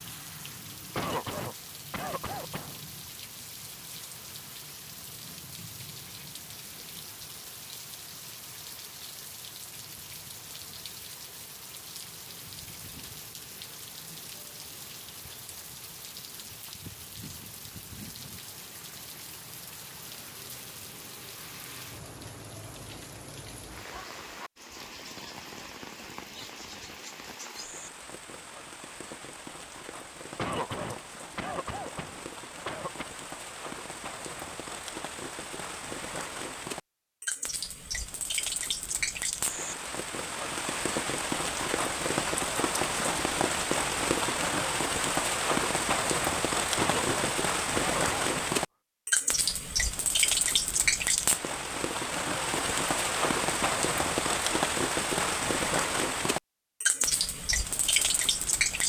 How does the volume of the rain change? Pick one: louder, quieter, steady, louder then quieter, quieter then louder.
louder.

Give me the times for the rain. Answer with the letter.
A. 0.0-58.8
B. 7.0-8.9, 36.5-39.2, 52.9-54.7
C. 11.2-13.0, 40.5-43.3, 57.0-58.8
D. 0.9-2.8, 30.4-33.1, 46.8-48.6
A.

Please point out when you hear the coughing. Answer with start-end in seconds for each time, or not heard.
0.9-2.8, 30.4-33.1, 46.8-48.6.